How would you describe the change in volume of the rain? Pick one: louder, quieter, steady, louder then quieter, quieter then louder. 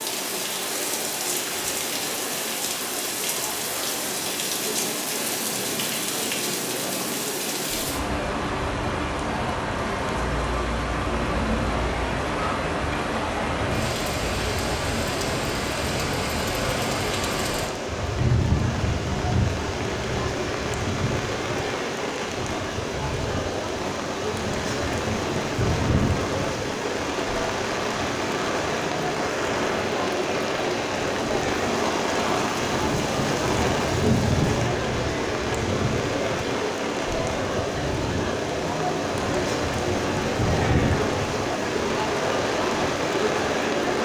steady.